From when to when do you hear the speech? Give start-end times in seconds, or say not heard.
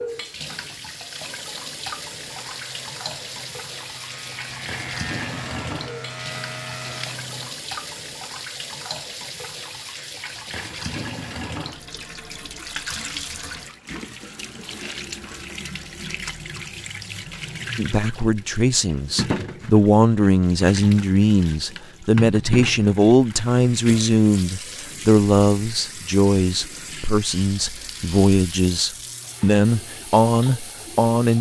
17.8-31.3.